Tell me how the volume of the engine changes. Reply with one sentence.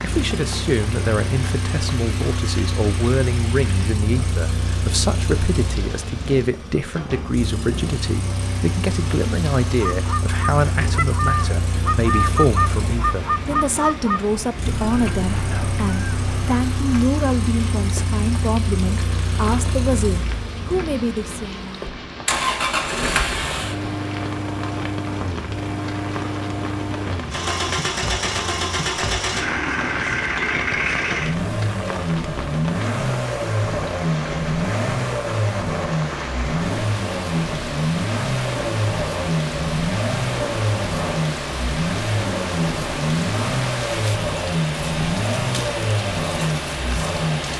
The loudness of the engine goes up.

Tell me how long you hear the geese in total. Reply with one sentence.
You can hear the geese for 7 seconds altogether.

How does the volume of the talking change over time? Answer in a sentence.
The loudness of the talking stays about the same.